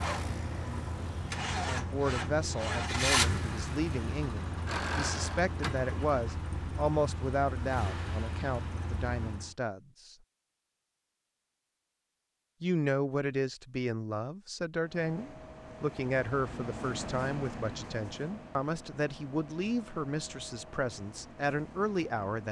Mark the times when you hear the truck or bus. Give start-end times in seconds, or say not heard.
0.0-9.6, 14.8-22.4.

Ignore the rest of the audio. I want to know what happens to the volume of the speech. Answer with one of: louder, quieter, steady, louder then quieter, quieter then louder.
steady.